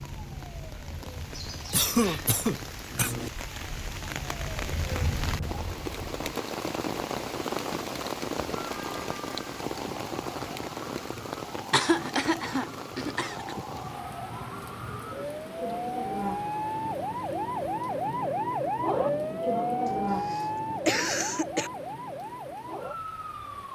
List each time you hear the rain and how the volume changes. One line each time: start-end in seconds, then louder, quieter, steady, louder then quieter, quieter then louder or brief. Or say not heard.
0.0-23.7 louder then quieter.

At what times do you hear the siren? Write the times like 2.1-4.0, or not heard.
0.0-6.3, 8.6-23.7.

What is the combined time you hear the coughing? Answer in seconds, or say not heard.
5 s.